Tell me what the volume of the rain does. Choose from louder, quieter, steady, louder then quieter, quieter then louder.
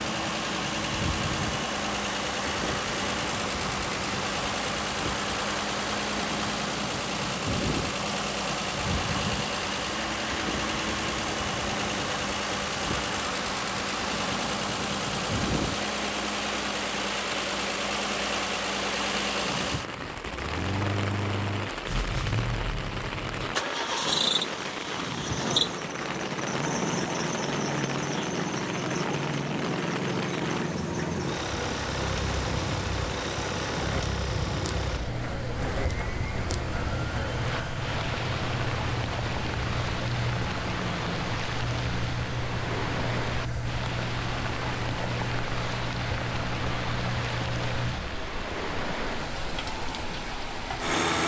steady.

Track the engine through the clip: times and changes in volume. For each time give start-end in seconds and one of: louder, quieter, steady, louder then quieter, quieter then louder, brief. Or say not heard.
0.0-51.2 steady.